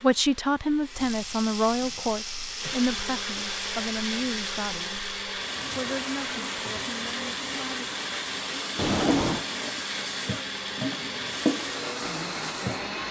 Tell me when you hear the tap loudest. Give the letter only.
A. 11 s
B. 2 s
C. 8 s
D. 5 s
A.